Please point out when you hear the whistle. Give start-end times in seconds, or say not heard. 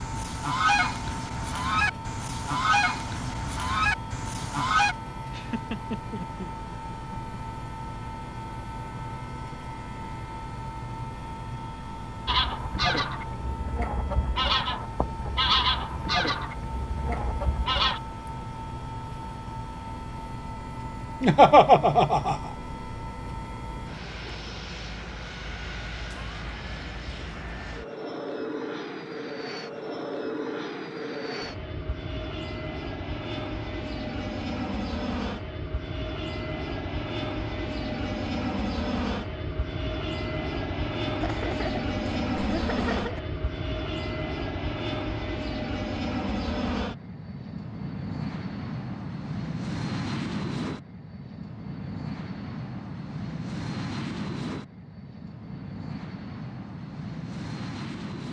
not heard.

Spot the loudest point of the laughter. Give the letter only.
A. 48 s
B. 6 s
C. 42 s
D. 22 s
D.